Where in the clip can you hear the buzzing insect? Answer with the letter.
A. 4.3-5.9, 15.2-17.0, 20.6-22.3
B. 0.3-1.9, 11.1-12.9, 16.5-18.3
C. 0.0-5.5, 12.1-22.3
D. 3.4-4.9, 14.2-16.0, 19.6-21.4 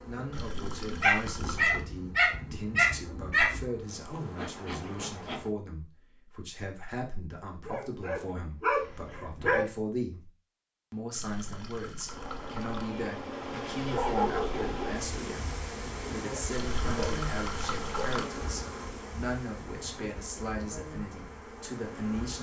C.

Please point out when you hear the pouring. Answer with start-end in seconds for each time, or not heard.
0.3-1.9, 11.1-12.9, 16.5-18.3.